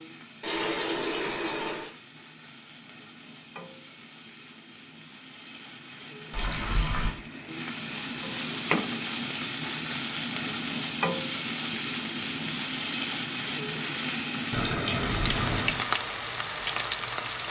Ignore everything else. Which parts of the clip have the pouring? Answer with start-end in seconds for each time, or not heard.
0.4-1.9, 6.3-7.1, 14.5-15.8.